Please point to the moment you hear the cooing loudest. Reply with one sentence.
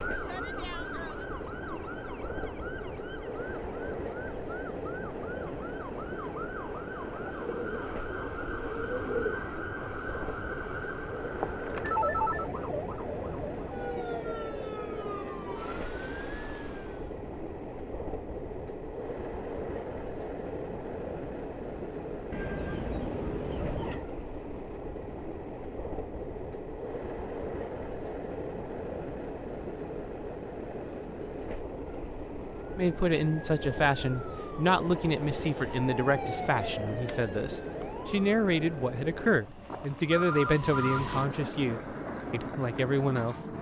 The loudest moment of the cooing is at 9 seconds.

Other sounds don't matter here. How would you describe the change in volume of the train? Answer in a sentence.
The loudness of the train stays about the same.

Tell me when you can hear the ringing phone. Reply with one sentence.
The ringing phone can be heard from 11.4 to 12.5 s and from 39.2 to 41.0 s.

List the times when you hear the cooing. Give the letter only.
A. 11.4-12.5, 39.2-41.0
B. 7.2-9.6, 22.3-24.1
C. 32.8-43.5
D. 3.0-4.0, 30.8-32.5
B.